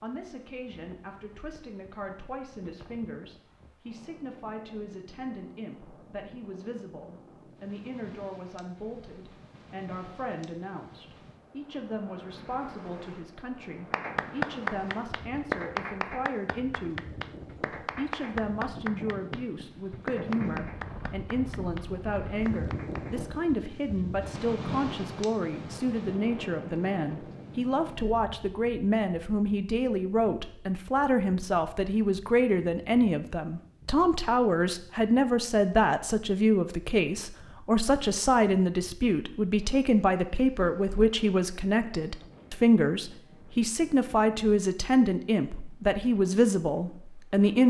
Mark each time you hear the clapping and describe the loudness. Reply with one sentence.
The clapping can be heard from 13.9 to 23.2 s, getting quieter.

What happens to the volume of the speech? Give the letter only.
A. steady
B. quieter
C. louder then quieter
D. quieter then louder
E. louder
E.